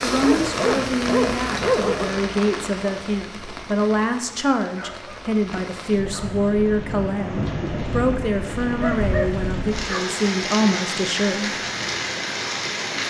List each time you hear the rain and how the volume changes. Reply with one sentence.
The rain can be heard from 0.0 to 13.0 s, getting quieter then louder.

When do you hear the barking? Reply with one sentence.
The barking can be heard from 0.2 to 2.2 s, from 4.8 to 5.2 s, from 6.1 to 6.5 s and from 8.8 to 10.2 s.